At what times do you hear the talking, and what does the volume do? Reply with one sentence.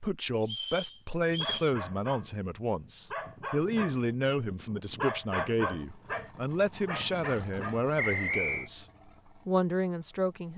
You can hear the talking from 0.0 to 8.8 s, at a steady volume; and briefly from 9.4 to 10.5 s.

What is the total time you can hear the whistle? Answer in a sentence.
You can hear the whistle for 2 seconds altogether.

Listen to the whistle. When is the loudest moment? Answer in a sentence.
The volume of the whistle peaks at 8 seconds.